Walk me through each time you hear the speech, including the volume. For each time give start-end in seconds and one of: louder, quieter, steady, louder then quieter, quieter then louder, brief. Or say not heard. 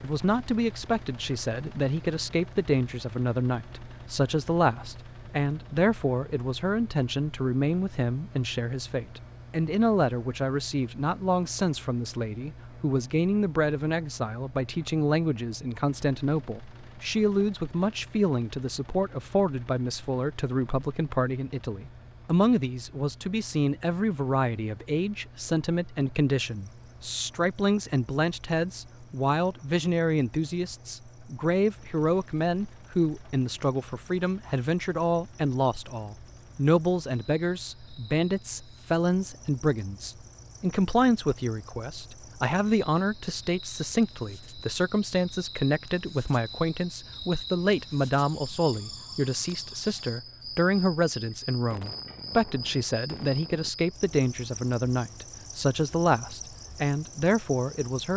0.0-58.1 steady.